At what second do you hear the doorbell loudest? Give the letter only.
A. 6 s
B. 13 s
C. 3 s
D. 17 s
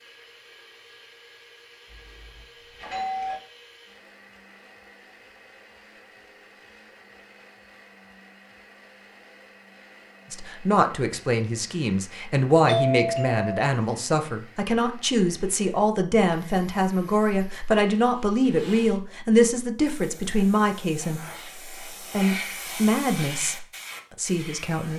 B.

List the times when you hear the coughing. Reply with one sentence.
The coughing can't be heard in this clip.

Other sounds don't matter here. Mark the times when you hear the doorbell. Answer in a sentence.
The doorbell can be heard from 1.9 to 3.4 s and from 12.7 to 13.6 s.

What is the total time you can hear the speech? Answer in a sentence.
The speech can be heard for 14 seconds in total.